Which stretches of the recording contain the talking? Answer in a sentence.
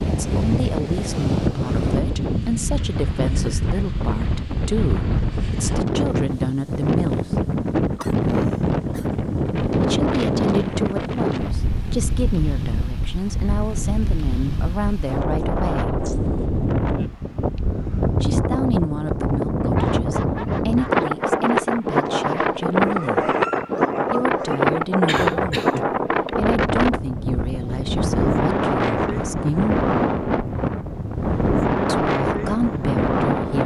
You can hear the talking from 0.1 to 7.5 s, from 9.8 to 16.0 s, from 18.2 to 23.4 s, from 24.1 to 29.8 s and from 31.9 to 33.6 s.